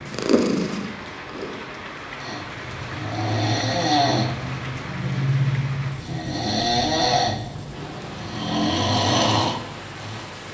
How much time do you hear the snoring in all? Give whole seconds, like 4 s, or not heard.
8 s.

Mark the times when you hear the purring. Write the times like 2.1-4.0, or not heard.
0.0-1.8.